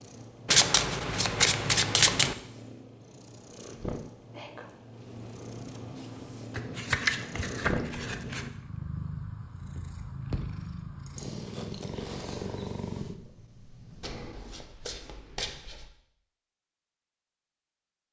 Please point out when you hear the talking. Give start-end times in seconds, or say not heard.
not heard.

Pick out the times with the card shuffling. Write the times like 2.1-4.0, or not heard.
0.5-2.4, 6.5-8.5, 14.0-15.9.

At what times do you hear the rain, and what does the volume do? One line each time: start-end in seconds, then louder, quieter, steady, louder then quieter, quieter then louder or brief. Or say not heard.
not heard.